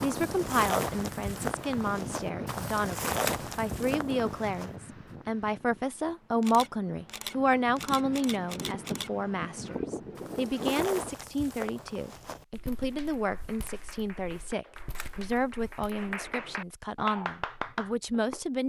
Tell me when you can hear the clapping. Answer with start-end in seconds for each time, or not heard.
12.9-18.4.